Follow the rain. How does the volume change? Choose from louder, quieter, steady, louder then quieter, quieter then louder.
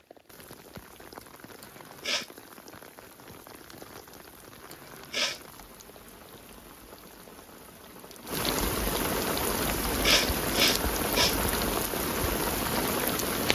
louder.